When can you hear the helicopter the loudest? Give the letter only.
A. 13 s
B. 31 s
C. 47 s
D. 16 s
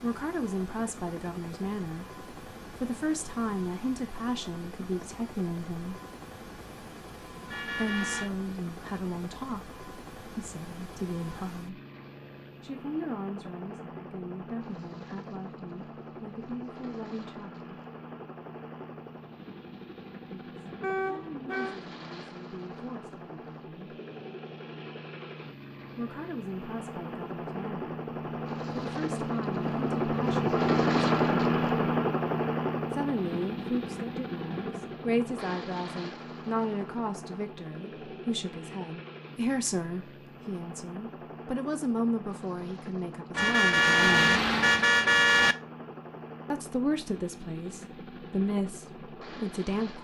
B.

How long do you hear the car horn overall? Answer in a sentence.
The car horn can be heard for 4 seconds in total.